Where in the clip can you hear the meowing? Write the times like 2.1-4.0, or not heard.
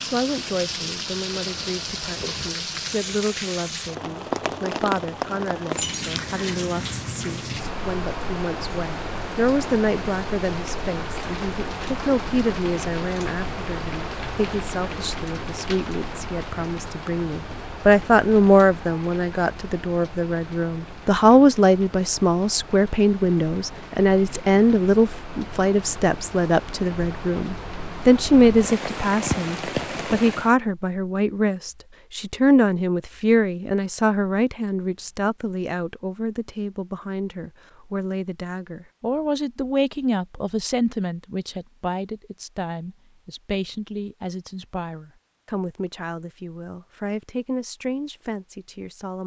not heard.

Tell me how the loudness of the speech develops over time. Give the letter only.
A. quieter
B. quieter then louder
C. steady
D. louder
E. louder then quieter
E.